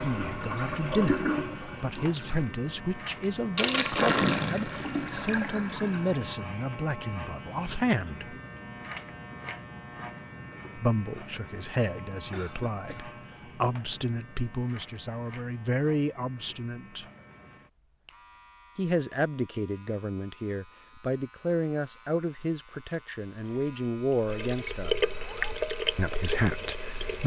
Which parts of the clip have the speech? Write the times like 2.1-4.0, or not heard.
0.0-8.3, 10.8-17.1, 18.8-24.9, 25.9-27.2.